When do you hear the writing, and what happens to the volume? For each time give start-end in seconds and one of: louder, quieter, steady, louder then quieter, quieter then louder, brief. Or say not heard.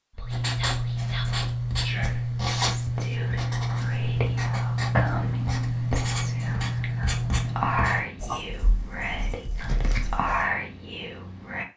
0.2-10.5 quieter.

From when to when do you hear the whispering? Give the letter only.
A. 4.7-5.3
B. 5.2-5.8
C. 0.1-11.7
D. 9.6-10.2
C.